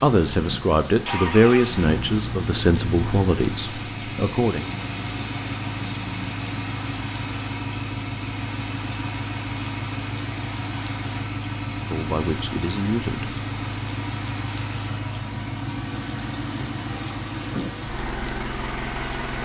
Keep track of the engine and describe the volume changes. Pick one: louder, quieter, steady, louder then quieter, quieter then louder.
steady.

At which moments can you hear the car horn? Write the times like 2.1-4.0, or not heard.
not heard.